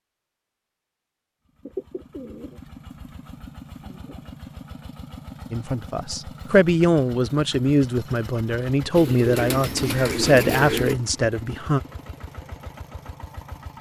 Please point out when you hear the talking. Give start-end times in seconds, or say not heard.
5.5-11.8.